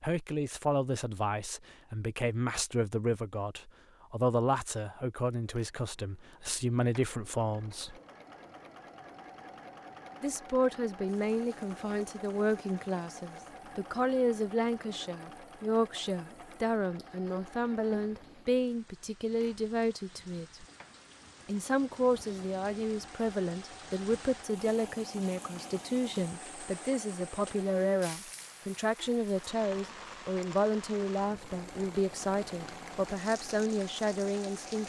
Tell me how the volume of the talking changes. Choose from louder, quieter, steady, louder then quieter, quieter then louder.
steady.